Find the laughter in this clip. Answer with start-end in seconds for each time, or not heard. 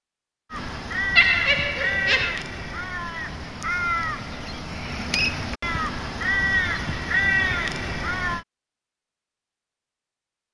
1.1-2.5.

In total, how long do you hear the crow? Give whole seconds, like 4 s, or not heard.
8 s.